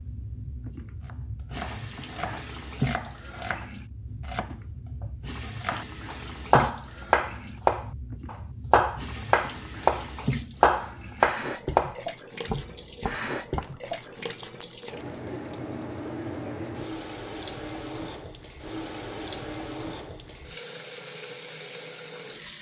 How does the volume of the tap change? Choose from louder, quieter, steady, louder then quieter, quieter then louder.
steady.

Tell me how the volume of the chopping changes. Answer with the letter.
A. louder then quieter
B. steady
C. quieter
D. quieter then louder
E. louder
E.